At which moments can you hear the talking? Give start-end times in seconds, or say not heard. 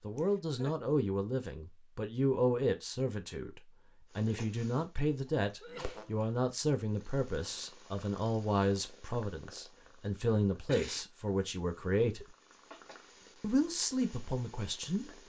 0.0-12.2, 13.4-15.2.